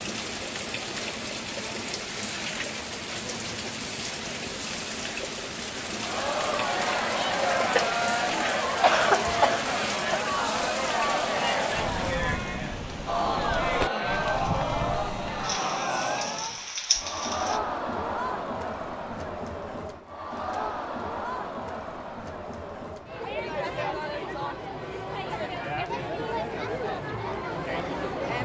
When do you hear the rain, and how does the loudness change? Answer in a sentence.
The rain can be heard from 0.0 to 17.6 s, at a steady volume.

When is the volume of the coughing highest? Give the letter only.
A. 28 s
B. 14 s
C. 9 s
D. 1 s
C.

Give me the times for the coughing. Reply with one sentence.
The coughing can be heard from 7.5 to 10.2 s.